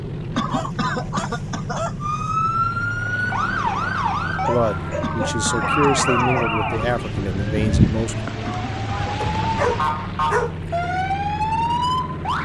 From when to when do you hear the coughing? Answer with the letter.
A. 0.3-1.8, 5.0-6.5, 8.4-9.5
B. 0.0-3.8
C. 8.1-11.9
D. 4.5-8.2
A.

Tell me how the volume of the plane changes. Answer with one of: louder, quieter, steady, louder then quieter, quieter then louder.
steady.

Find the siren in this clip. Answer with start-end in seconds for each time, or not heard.
2.0-12.4.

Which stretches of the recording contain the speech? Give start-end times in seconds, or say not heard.
4.5-8.2.